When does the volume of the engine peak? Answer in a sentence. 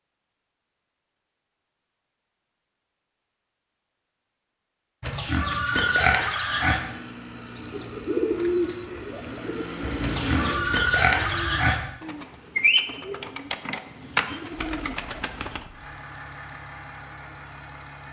The loudest moment of the engine is at 10 seconds.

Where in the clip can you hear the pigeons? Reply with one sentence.
You can hear the pigeons from 7.5 to 15.7 s.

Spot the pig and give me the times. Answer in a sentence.
You can hear the pig from 5.0 to 6.8 s and from 10.0 to 11.8 s.